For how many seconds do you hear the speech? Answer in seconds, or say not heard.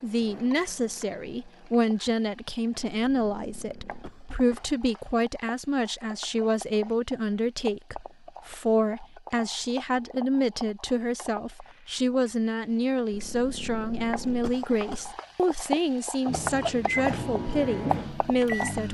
19 s.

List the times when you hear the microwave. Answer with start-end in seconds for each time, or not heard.
0.0-1.7, 16.2-18.8.